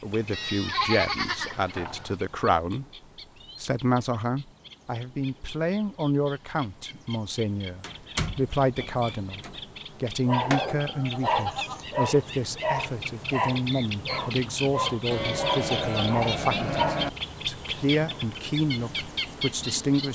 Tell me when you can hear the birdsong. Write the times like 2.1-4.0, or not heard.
0.0-20.1.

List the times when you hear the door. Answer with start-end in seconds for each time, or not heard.
7.8-9.6.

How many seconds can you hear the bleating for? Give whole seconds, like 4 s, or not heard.
5 s.